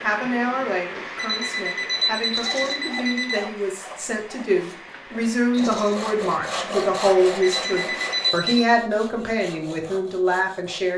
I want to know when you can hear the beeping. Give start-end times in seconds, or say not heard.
0.9-3.5, 7.2-8.8.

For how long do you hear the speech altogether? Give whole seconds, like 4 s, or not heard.
11 s.